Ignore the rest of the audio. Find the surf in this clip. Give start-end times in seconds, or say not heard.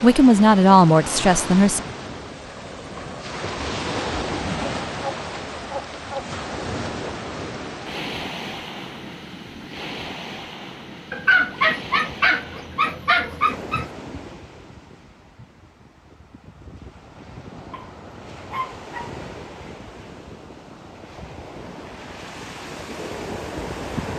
0.0-24.1.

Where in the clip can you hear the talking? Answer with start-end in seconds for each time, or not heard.
0.0-1.8.